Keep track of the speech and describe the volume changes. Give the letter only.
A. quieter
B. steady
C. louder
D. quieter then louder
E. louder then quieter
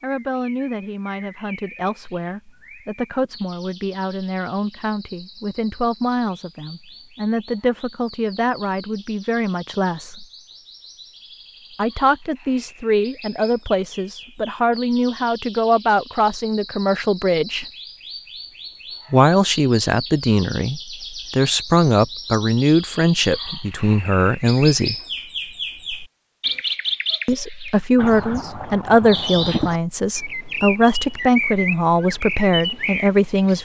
C.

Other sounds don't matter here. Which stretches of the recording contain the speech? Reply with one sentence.
You can hear the speech from 0.0 to 10.2 s, from 11.8 to 17.6 s, from 19.1 to 24.9 s and from 27.2 to 33.6 s.